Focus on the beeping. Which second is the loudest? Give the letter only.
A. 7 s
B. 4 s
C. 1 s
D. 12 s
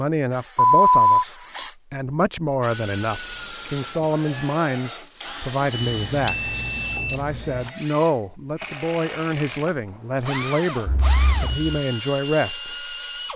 C.